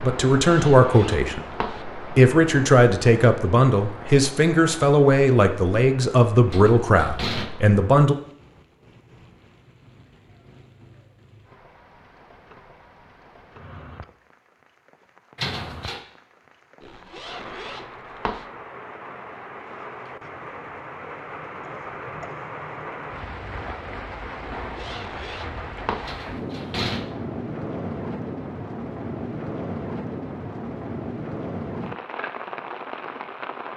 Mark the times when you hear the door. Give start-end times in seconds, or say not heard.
6.5-7.5, 15.3-16.0, 26.1-27.1.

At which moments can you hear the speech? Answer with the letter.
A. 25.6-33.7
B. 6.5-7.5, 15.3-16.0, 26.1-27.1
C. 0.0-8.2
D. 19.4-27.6
C.